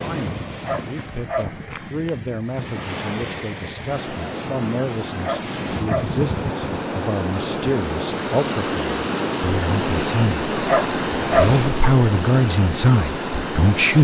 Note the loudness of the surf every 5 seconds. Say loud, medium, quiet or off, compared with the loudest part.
medium, loud, loud.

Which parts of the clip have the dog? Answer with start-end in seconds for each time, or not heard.
0.6-1.8, 5.2-6.2, 10.7-11.6.